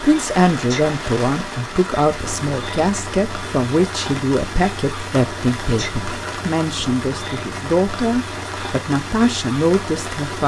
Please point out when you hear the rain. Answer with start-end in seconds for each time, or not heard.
0.0-10.4.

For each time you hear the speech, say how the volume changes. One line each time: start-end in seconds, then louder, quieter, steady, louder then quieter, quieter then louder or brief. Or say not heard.
0.0-10.4 steady.